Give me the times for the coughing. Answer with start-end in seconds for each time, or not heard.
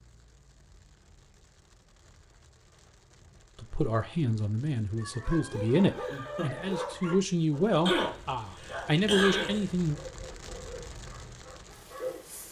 7.8-9.7.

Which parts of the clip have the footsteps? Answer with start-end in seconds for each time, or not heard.
not heard.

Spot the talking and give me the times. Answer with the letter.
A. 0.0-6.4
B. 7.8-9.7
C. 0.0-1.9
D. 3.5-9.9
D.